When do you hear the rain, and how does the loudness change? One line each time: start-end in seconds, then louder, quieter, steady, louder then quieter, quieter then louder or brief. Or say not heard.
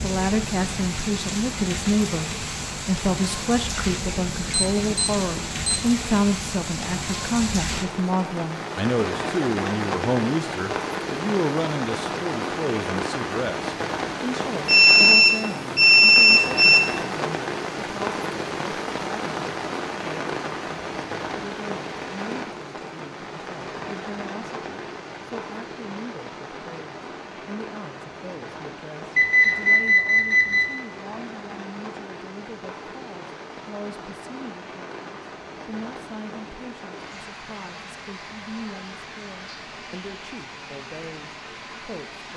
0.0-42.3 quieter.